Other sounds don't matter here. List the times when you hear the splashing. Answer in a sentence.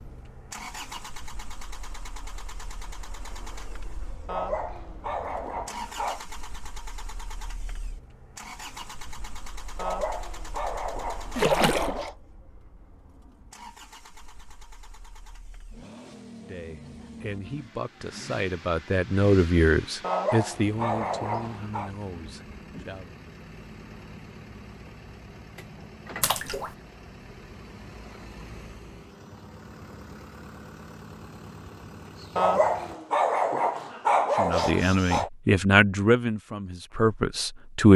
You can hear the splashing from 11.3 to 12.1 s and from 26.2 to 26.7 s.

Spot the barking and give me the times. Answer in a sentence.
You can hear the barking from 4.2 to 6.2 s, from 9.8 to 12.2 s, from 20.0 to 21.9 s and from 32.4 to 35.3 s.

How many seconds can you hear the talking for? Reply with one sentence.
You can hear the talking for 10 seconds altogether.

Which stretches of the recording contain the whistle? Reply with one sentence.
The whistle can't be heard in this clip.